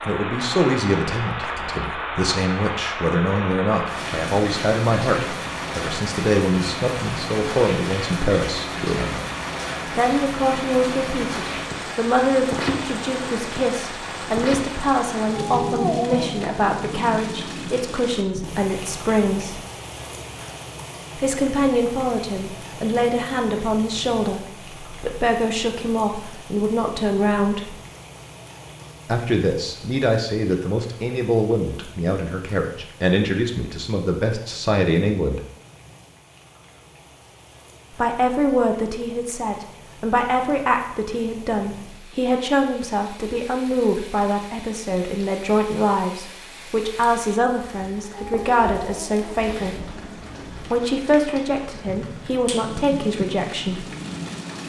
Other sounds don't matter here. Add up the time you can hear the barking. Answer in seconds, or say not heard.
3 s.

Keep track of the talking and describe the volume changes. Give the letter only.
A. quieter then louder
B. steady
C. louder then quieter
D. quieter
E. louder
B.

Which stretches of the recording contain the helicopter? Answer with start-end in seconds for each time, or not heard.
not heard.